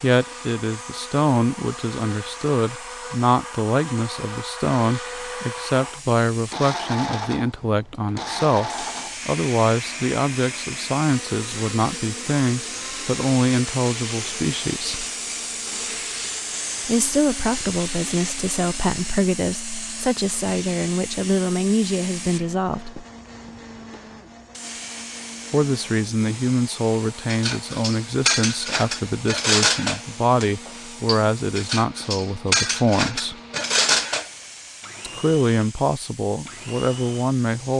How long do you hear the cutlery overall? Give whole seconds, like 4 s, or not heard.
7 s.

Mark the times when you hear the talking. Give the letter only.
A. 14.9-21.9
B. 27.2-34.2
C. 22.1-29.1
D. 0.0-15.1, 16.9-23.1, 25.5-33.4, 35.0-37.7
D.